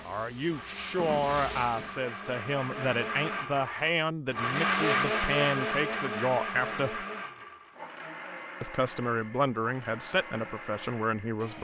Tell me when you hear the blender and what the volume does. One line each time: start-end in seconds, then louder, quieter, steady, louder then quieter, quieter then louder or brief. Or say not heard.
0.5-11.5 louder then quieter.